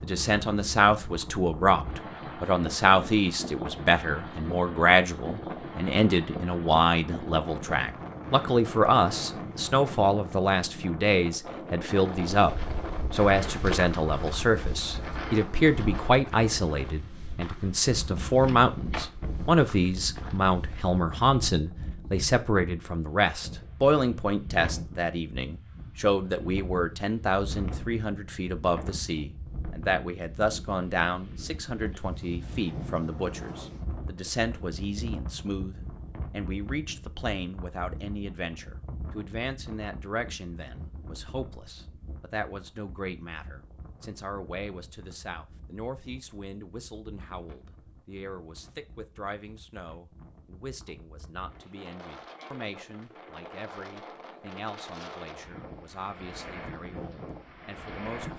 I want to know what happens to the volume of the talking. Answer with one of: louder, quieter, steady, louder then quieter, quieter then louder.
quieter.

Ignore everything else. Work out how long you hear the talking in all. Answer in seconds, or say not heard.
58 s.